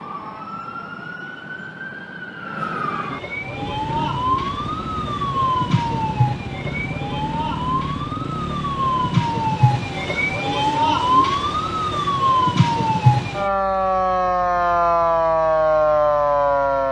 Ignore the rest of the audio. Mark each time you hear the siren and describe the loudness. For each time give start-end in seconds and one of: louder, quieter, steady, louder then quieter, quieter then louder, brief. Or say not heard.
0.0-16.8 louder.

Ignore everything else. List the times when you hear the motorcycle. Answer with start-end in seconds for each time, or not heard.
3.4-12.2.